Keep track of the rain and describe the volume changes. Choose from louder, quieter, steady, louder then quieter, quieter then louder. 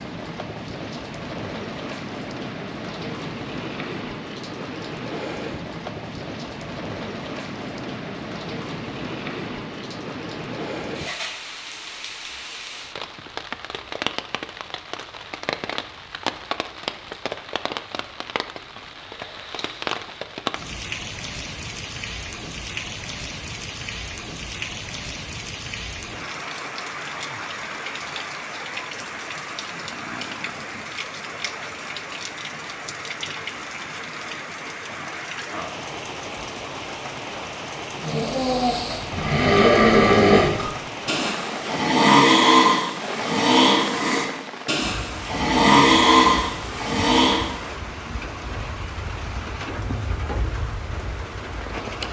steady.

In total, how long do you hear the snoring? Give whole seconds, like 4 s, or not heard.
10 s.